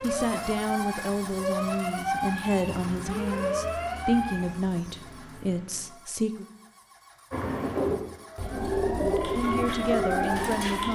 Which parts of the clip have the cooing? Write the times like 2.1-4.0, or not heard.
7.3-10.9.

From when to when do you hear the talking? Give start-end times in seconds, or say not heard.
0.0-6.5, 8.9-10.9.